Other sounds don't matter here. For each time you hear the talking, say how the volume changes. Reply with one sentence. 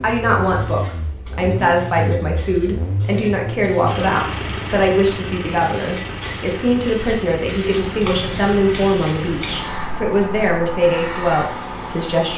You can hear the talking from 0.0 to 12.3 s, at a steady volume.